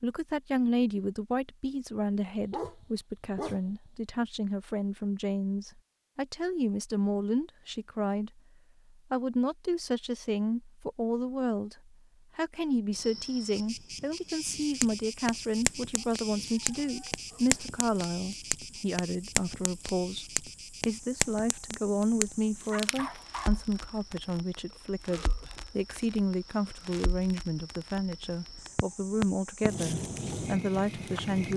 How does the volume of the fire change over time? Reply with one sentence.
The loudness of the fire goes down, then up.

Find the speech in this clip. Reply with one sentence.
You can hear the speech from 0.0 to 8.4 s and from 9.1 to 31.5 s.